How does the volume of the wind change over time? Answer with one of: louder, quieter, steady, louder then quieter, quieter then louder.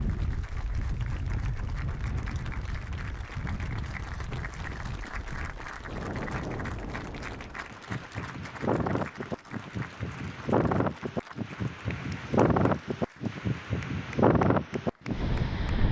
louder.